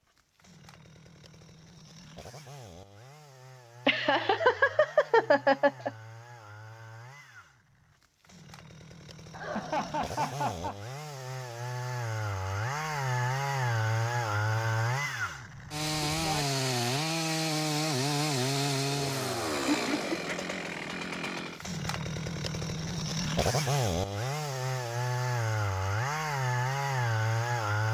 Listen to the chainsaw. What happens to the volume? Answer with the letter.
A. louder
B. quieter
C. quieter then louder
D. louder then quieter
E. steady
A.